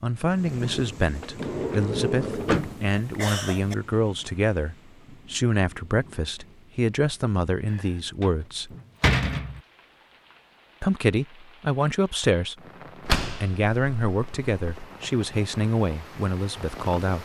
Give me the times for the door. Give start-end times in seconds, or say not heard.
1.2-2.8, 7.7-9.6, 13.1-14.8.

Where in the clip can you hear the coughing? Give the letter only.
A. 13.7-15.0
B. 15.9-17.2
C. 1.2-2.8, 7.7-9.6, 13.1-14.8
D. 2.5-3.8
D.